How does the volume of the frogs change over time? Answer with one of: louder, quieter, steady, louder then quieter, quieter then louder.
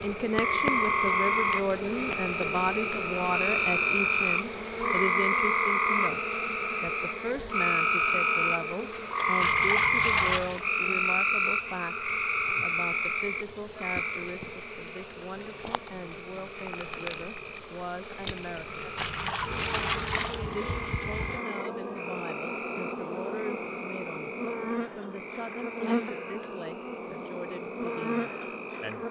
quieter.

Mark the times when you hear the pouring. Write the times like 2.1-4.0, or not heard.
9.4-10.7, 18.9-20.4.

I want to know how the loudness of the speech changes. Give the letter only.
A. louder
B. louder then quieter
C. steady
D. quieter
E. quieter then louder
D.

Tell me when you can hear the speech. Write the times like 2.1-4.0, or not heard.
0.0-18.9, 20.4-24.3, 24.9-29.0.